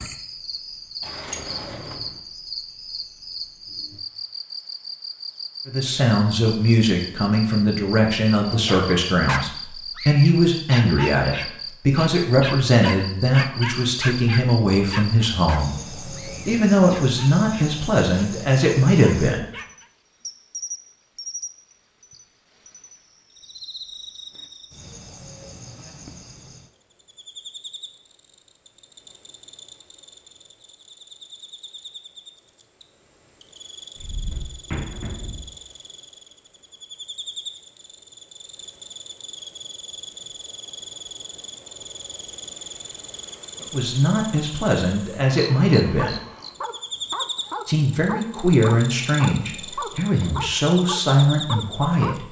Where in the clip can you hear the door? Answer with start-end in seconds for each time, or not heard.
1.0-2.1, 34.0-35.5.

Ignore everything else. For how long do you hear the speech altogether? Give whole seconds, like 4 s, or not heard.
21 s.